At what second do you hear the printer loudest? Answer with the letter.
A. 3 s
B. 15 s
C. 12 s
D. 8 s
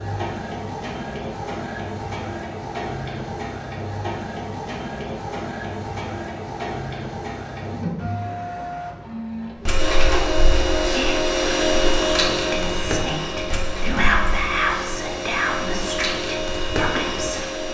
C.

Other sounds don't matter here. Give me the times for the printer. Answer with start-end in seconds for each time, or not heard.
0.0-17.6.